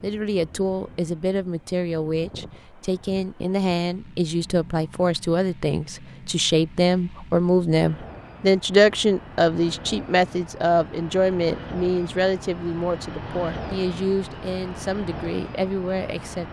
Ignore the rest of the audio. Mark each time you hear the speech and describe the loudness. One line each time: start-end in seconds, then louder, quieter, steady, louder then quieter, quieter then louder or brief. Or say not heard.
0.0-16.4 louder then quieter.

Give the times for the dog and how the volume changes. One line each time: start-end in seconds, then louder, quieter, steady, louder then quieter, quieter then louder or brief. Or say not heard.
not heard.